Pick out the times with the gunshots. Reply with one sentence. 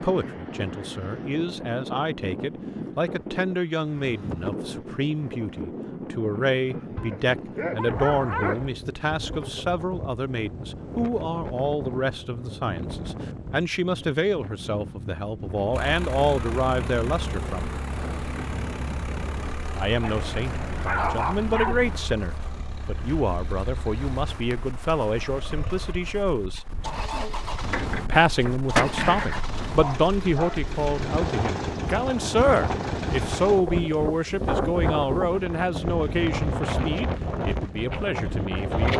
The gunshots can be heard from 27.6 to 29.4 s.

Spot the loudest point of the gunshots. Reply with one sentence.
The volume of the gunshots peaks at 29 seconds.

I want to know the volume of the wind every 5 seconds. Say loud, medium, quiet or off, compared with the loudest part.
medium, medium, medium, medium, quiet, quiet, loud, loud.